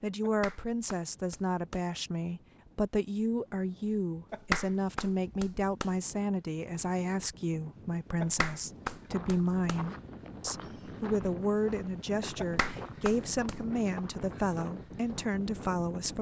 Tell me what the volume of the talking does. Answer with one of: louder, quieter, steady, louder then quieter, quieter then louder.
steady.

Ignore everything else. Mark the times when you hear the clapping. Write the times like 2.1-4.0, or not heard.
0.2-1.8, 4.3-5.9, 8.2-9.8, 12.3-13.7.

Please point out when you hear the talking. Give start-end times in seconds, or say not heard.
0.0-16.1.